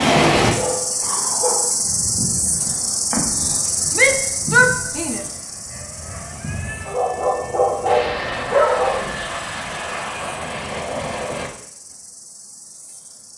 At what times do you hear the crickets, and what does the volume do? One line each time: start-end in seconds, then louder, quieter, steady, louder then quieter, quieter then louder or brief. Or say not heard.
0.0-13.3 quieter.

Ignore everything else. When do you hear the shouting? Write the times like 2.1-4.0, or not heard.
4.0-5.2.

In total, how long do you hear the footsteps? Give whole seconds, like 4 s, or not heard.
not heard.